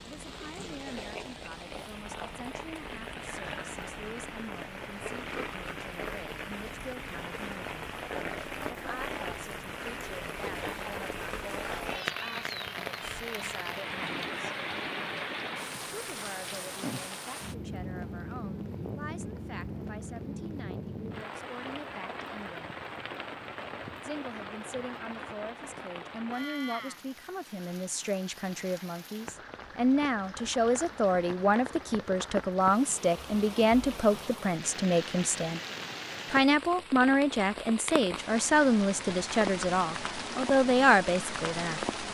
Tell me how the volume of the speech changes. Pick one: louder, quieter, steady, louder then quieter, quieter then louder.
louder.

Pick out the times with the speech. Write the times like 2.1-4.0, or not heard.
0.0-7.7, 8.7-14.6, 15.9-22.8, 24.0-35.6, 36.3-41.8.